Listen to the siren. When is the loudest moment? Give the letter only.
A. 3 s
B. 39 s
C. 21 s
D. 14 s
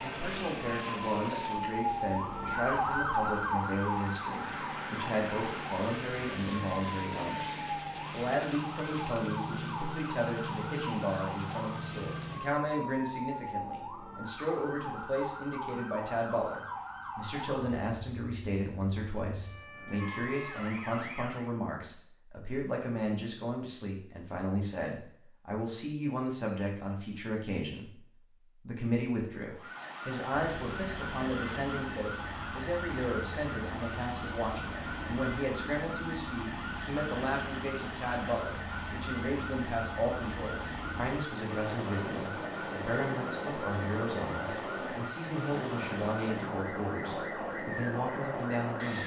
A.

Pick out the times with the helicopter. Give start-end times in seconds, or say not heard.
0.0-12.4, 30.3-49.0.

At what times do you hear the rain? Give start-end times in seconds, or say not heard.
not heard.